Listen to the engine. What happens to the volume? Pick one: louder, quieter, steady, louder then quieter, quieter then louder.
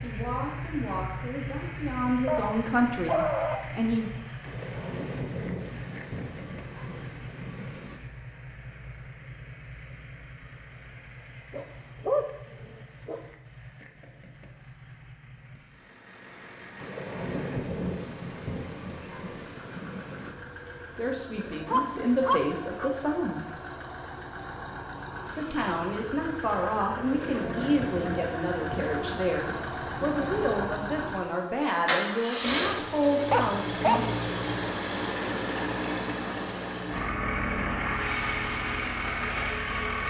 quieter then louder.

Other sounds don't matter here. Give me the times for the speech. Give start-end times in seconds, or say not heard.
0.0-4.1, 20.9-23.4, 25.4-34.1.